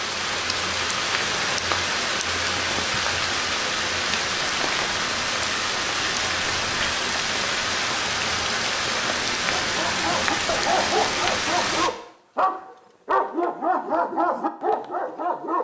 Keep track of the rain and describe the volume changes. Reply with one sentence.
The loudness of the rain stays about the same.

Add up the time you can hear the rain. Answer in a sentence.
You can hear the rain for 12 seconds altogether.